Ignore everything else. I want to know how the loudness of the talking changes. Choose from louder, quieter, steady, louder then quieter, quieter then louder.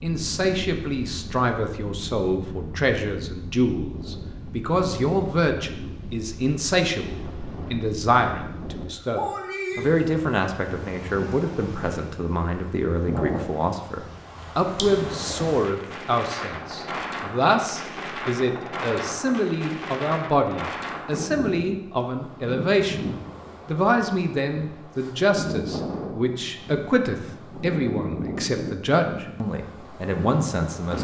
steady.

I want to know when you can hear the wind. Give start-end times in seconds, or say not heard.
0.0-30.9.